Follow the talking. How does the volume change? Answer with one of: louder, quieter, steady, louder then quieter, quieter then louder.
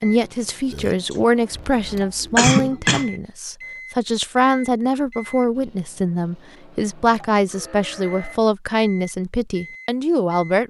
steady.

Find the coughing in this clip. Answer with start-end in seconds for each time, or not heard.
1.1-3.1.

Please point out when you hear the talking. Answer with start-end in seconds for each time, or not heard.
0.0-10.6.